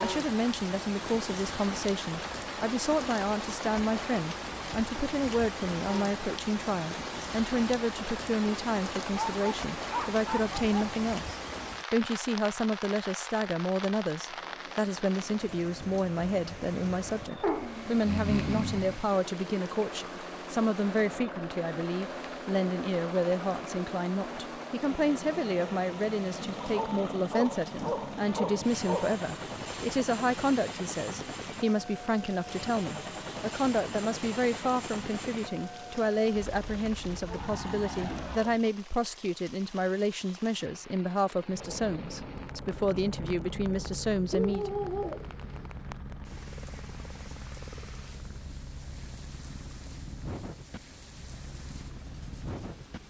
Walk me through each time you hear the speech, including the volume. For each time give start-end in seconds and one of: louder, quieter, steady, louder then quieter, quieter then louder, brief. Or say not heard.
0.0-44.7 steady.